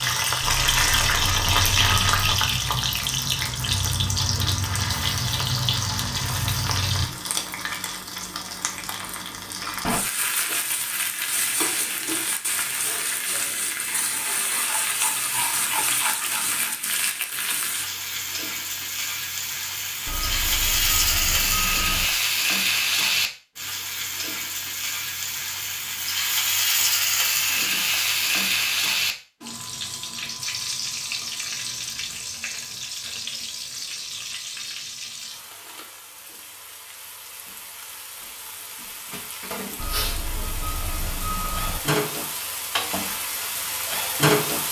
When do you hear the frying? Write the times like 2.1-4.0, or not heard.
0.0-44.6.